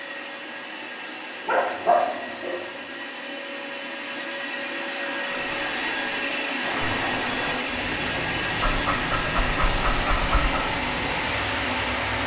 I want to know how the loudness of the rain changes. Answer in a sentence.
The loudness of the rain stays about the same.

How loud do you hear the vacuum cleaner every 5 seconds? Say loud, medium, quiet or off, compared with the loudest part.
medium, loud, loud.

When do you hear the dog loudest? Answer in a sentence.
The volume of the dog peaks at 2 seconds.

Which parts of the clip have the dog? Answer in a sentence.
You can hear the dog from 1.4 to 2.6 s and from 8.6 to 10.7 s.